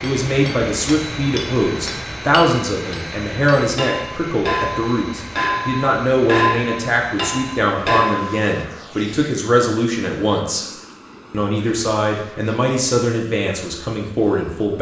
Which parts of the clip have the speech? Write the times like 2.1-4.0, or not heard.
0.0-10.7, 11.3-14.7.